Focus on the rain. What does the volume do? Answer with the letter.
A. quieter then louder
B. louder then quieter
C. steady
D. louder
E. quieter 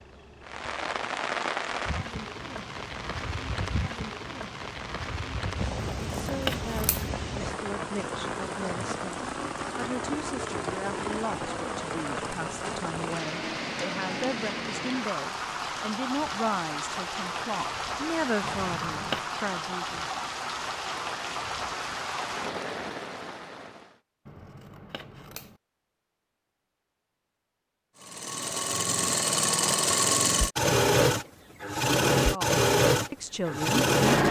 C.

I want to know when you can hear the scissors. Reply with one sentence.
You can hear the scissors from 5.8 to 7.1 s, from 18.4 to 19.2 s and from 24.2 to 25.6 s.